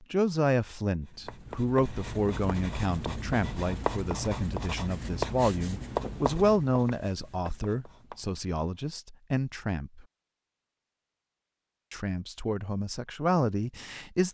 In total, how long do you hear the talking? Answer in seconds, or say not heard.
12 s.